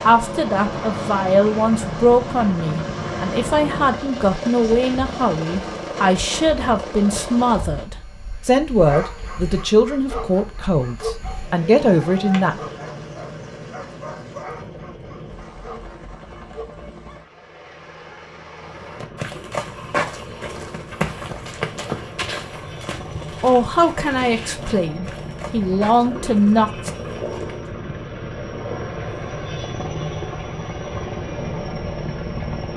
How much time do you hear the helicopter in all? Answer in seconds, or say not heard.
33 s.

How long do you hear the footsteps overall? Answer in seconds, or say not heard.
9 s.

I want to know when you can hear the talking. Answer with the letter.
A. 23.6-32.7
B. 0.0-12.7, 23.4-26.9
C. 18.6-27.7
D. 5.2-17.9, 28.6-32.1
B.